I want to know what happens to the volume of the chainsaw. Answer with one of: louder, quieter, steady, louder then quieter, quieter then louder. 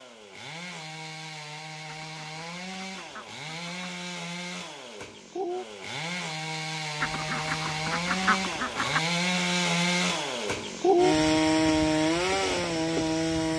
louder.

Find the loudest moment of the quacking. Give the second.
8 s.